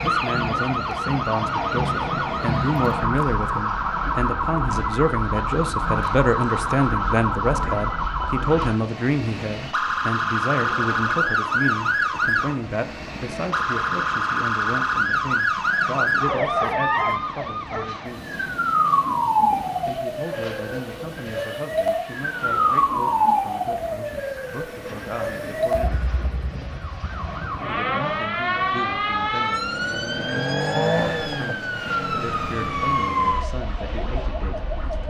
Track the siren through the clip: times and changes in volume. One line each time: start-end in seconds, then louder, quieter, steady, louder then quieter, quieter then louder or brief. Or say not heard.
0.0-35.0 steady.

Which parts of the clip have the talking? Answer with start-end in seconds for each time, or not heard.
0.0-18.4, 19.9-26.1, 27.6-34.8.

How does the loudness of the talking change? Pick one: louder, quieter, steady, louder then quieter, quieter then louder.
quieter.